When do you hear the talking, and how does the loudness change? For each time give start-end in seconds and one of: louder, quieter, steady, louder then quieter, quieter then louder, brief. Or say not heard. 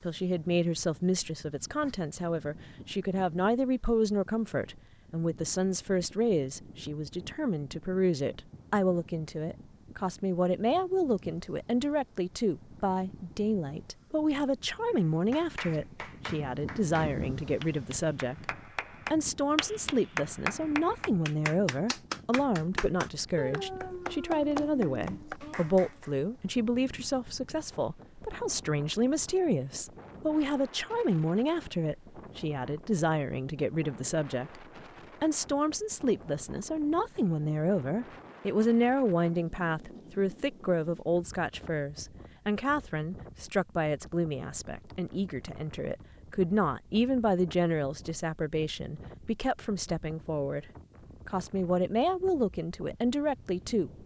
0.0-53.9 steady.